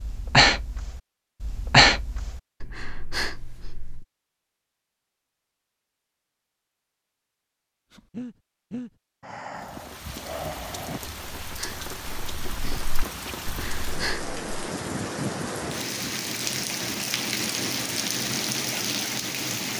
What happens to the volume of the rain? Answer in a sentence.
The loudness of the rain goes up.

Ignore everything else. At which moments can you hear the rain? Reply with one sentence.
The rain can be heard from 9.6 to 19.7 s.